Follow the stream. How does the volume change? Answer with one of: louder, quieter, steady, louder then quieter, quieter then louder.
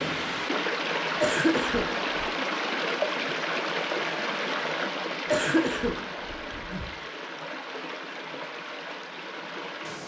quieter.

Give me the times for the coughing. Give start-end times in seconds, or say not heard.
1.2-2.2, 5.2-6.9.